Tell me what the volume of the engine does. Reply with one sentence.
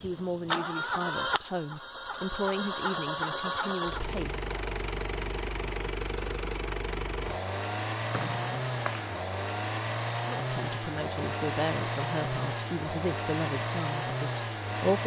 The volume of the engine stays about the same.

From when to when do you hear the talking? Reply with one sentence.
You can hear the talking from 0.0 to 4.6 s and from 10.2 to 15.0 s.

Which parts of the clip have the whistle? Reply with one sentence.
The whistle can be heard from 8.1 to 9.2 s.